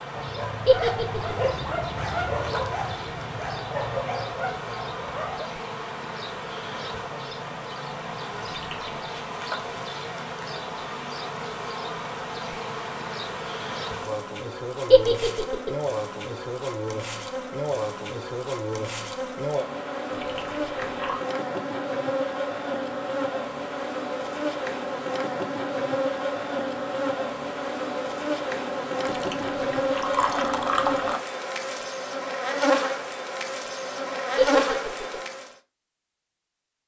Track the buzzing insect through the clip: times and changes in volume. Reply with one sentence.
You can hear the buzzing insect from 0.0 to 35.5 s, getting louder.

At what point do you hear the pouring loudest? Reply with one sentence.
The loudest moment of the pouring is at 31 seconds.